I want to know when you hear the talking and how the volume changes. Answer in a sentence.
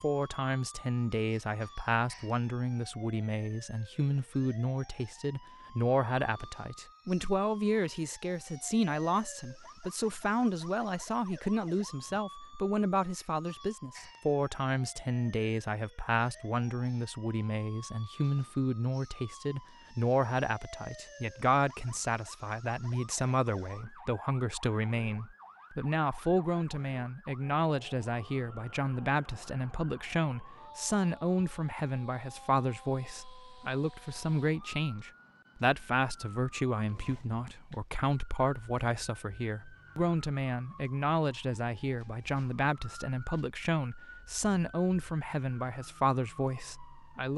You can hear the talking from 0.0 to 47.3 s, at a steady volume.